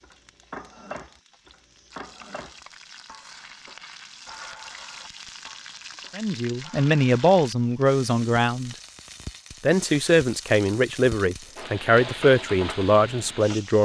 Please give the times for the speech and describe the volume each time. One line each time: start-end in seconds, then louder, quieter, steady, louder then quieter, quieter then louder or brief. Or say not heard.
6.2-8.8 brief
9.6-13.7 steady.